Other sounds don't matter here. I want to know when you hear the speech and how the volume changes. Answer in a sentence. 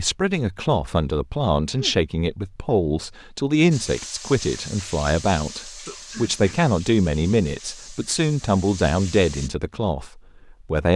The speech can be heard from 0.0 to 10.9 s, at a steady volume.